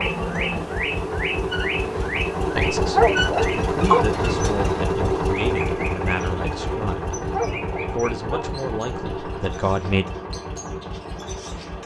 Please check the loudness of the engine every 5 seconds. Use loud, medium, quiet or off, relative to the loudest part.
loud, loud, medium.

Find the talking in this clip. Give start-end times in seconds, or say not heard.
2.5-7.2, 7.9-10.1.